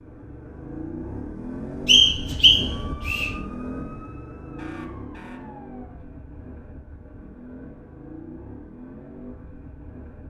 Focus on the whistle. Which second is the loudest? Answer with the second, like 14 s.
2 s.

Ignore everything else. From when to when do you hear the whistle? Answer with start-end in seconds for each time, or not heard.
1.9-3.3.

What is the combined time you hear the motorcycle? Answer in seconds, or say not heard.
10 s.